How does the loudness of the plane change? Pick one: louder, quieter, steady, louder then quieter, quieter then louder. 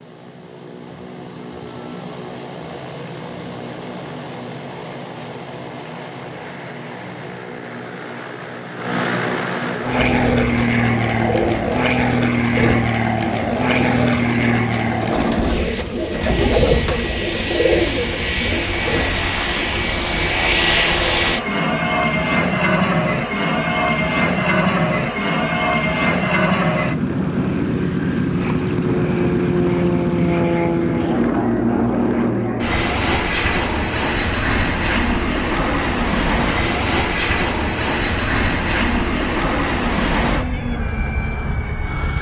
louder.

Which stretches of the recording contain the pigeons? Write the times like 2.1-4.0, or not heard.
9.8-19.1.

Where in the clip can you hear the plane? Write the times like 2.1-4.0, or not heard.
0.0-42.1.